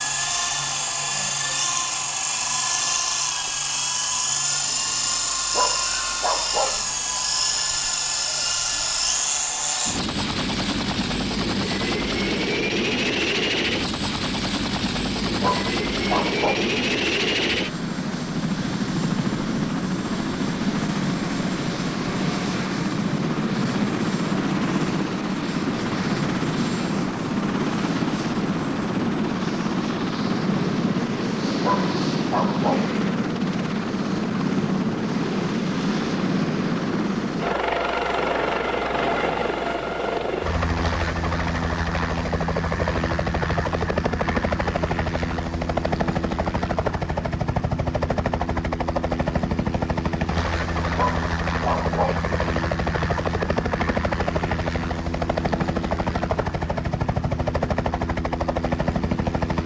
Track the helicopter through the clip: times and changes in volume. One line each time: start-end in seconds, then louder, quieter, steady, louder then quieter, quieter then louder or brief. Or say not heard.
0.0-59.6 steady.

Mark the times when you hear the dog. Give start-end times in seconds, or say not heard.
5.5-6.8, 15.4-16.7, 31.6-33.0, 51.0-52.2.